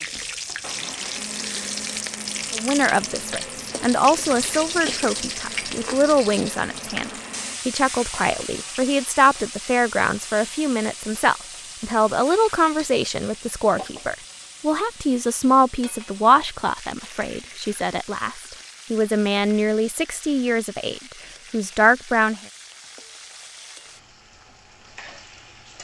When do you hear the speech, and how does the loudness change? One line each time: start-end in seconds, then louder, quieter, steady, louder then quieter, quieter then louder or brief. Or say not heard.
2.5-22.4 steady.